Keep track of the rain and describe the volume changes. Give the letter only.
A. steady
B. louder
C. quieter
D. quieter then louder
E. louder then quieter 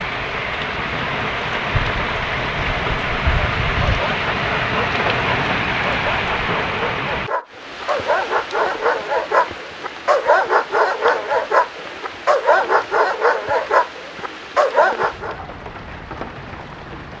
C.